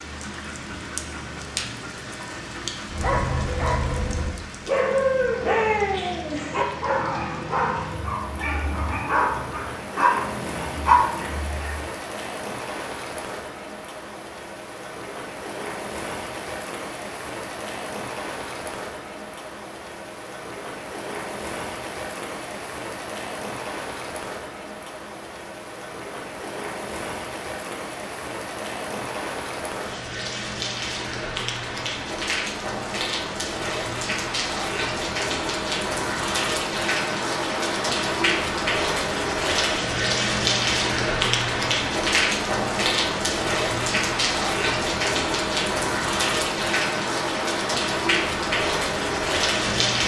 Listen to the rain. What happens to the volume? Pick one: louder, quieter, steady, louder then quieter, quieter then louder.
louder.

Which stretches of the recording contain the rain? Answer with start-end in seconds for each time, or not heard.
0.0-50.0.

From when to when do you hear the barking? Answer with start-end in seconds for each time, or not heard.
2.9-11.8.